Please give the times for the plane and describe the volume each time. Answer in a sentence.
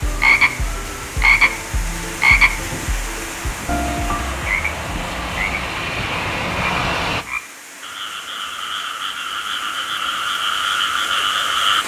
The plane can be heard from 0.0 to 7.2 s, getting louder.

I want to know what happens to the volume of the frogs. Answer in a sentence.
The loudness of the frogs goes down, then up.